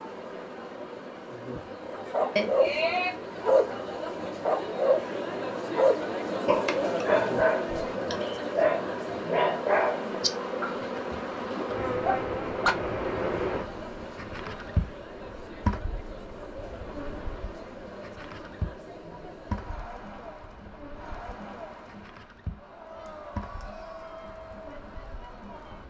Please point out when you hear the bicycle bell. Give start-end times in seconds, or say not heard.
2.4-3.1.